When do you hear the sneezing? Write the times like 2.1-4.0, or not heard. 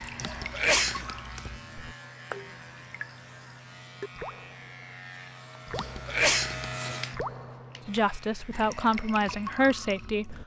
0.2-1.6, 5.8-6.7.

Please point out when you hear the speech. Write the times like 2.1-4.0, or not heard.
7.8-10.3.